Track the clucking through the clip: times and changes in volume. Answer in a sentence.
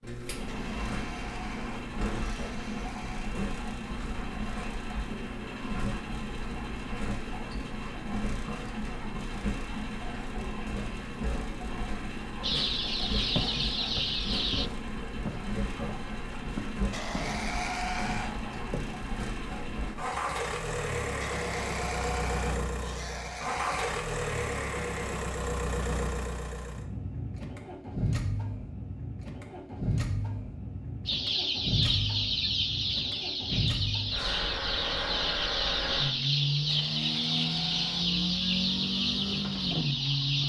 You can hear the clucking briefly from 12.4 to 14.7 s; and from 31.1 to 40.4 s, at a steady volume.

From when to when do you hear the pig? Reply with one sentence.
You can hear the pig from 0.5 to 3.4 s, from 16.9 to 18.4 s, from 21.2 to 24.0 s and from 36.6 to 38.1 s.